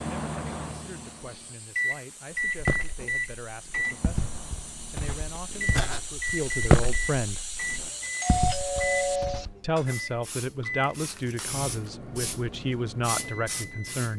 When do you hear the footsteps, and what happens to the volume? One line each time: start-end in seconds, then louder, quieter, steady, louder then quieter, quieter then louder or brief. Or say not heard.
2.5-9.6 louder then quieter.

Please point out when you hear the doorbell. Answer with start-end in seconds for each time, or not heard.
8.2-9.5.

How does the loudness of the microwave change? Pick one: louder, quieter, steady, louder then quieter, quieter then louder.
quieter.